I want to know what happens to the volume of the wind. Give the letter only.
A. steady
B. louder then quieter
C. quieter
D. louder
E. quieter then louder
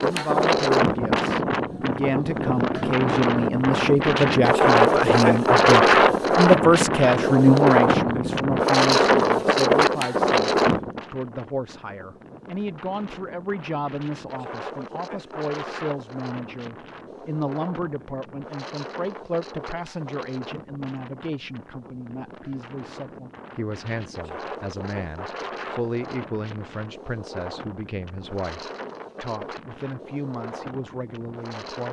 C.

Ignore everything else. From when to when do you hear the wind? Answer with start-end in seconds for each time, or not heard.
0.0-31.8.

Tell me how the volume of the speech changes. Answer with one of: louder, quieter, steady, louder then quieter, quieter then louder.
quieter.